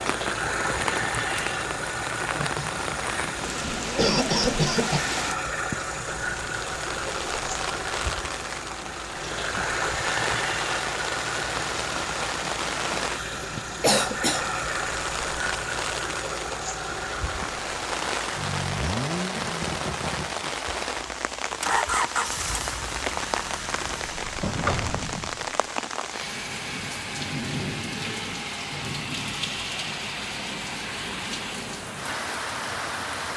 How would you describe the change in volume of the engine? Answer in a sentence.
The loudness of the engine stays about the same.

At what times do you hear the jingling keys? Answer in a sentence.
The jingling keys can be heard from 24.6 to 25.4 s.